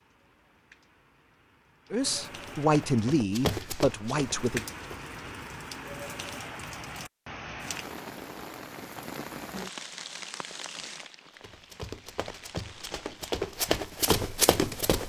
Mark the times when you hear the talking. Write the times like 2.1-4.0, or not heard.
1.9-4.7.